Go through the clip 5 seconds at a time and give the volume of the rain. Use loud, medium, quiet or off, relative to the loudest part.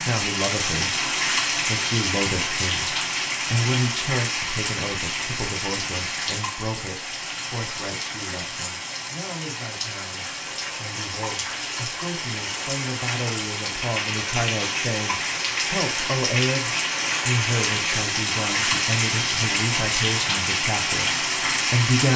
loud, medium, medium, loud, loud.